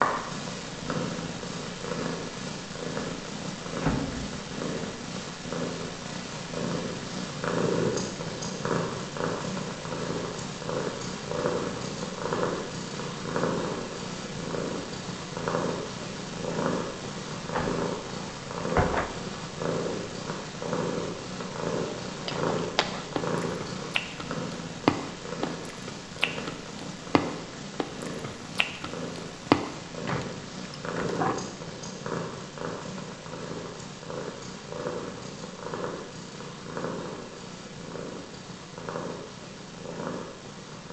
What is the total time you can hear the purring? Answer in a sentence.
You can hear the purring for 41 seconds altogether.